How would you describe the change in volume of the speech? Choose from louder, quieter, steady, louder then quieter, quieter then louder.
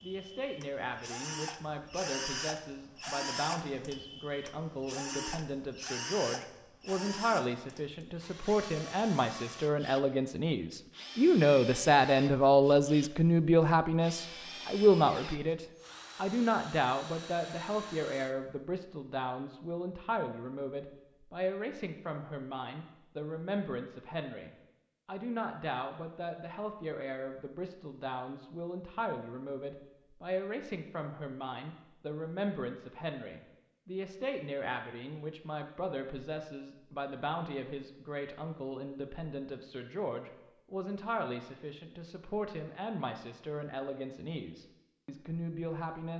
louder then quieter.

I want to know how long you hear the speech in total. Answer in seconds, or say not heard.
46 s.